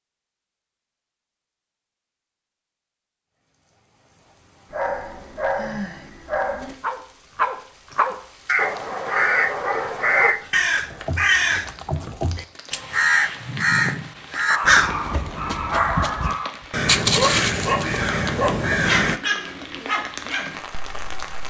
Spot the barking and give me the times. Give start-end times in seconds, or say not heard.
4.7-10.3, 13.4-21.4.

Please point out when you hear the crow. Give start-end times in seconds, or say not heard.
8.4-19.2.